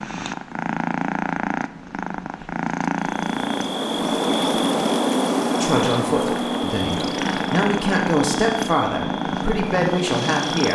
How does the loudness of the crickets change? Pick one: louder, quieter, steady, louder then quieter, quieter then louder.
quieter.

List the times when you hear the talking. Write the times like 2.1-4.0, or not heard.
5.6-10.6.